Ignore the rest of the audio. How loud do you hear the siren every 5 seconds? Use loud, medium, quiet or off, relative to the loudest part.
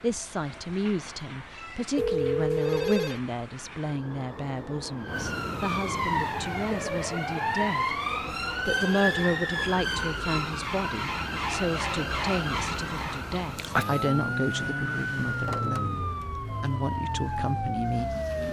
quiet, loud, loud, loud.